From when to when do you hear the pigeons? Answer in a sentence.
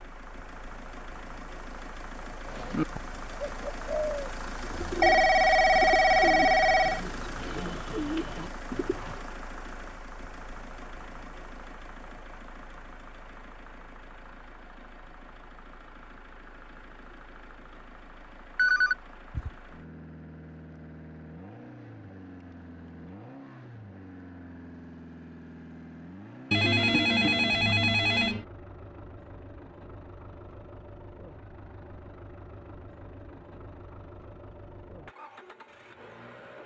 The pigeons can be heard from 2.5 to 9.2 s.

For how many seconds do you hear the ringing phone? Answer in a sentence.
The ringing phone can be heard for 5 seconds in total.